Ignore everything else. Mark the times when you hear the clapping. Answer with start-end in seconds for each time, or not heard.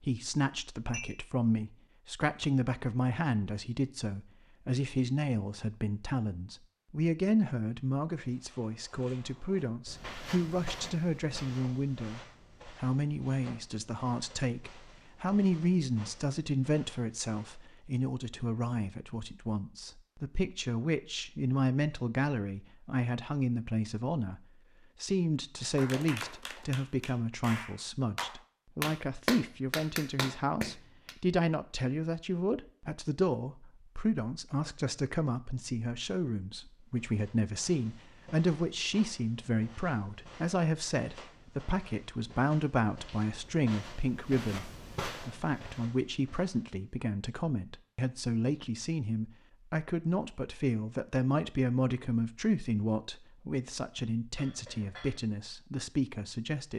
25.6-31.1.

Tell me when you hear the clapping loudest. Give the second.
29 s.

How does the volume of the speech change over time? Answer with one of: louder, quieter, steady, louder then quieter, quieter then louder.
steady.